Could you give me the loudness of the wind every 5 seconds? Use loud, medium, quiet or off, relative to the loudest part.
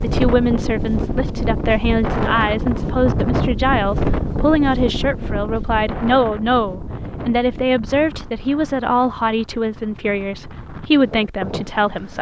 loud, medium, medium.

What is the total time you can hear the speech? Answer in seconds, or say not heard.
12 s.